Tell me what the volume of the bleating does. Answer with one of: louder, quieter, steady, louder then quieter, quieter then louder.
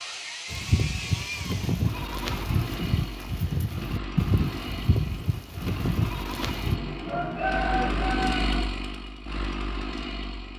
steady.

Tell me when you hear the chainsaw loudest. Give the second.
8 s.